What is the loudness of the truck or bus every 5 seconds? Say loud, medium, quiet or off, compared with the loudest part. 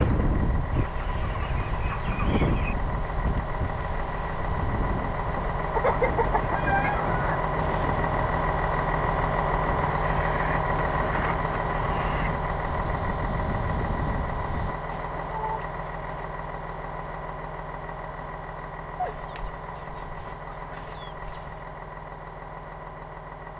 medium, loud, loud, medium, medium.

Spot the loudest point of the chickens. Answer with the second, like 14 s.
6 s.